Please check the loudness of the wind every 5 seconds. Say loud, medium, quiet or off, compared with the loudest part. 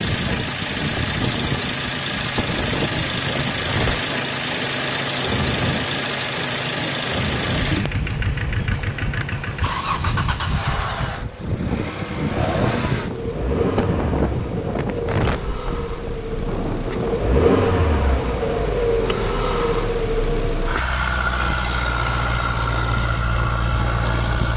loud, loud, loud, loud, medium.